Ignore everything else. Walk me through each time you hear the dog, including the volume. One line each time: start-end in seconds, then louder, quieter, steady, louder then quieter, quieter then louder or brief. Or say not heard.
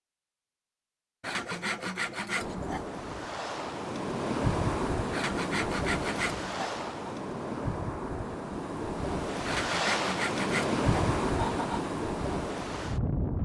not heard.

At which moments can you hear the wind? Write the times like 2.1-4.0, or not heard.
2.4-13.3.